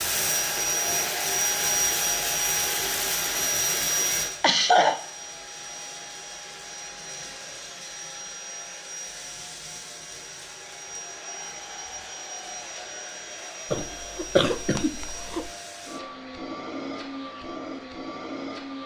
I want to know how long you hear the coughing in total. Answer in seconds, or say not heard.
2 s.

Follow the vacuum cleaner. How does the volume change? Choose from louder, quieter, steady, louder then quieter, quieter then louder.
quieter.